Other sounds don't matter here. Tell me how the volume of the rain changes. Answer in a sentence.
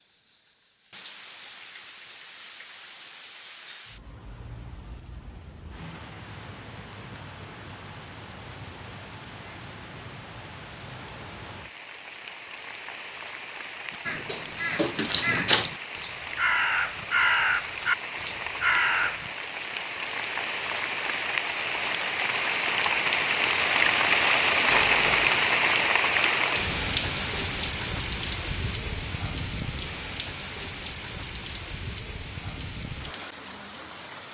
The volume of the rain goes up, then down.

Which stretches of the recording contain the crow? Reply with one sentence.
The crow can be heard from 13.9 to 19.3 s.